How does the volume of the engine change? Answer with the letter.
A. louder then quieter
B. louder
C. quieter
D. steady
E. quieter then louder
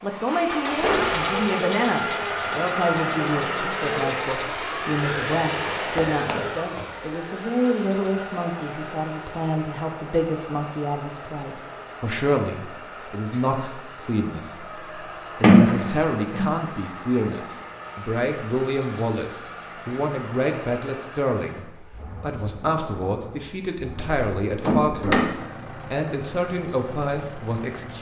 C.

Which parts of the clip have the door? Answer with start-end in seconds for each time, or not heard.
6.0-6.8, 15.4-16.5, 23.9-25.2.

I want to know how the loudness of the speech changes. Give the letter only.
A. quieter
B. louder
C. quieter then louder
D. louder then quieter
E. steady
E.